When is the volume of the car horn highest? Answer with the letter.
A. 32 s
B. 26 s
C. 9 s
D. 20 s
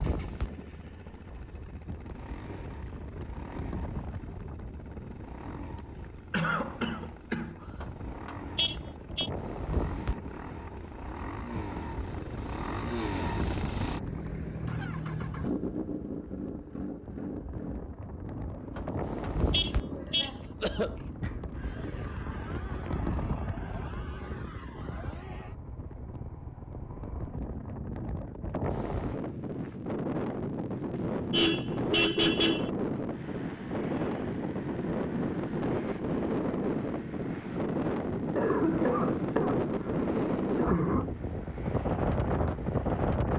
A.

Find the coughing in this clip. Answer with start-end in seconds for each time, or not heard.
6.3-7.8, 19.8-21.8, 38.4-41.0.